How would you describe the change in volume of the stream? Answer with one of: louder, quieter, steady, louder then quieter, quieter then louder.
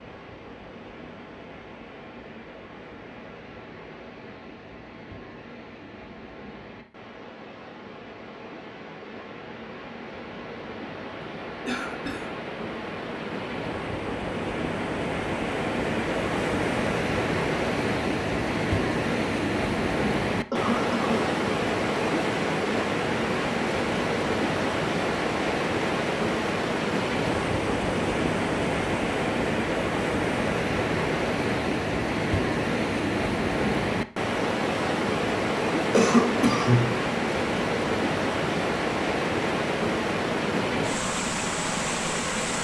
louder.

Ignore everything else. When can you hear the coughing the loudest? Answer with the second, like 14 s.
36 s.